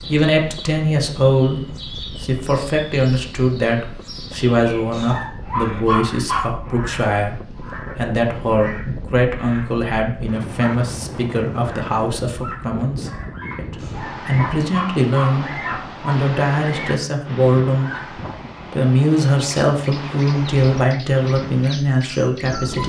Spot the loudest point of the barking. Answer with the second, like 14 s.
6 s.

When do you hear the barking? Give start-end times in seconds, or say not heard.
4.9-6.8, 13.8-16.1.